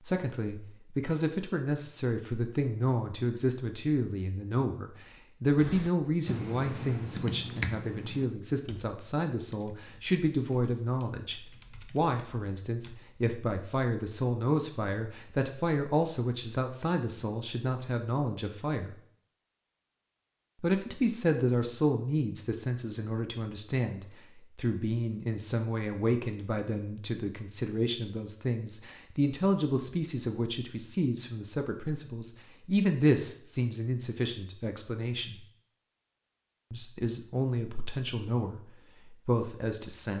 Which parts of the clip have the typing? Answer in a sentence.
You can hear the typing from 5.5 to 12.9 s.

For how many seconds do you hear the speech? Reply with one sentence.
The speech can be heard for 37 seconds in total.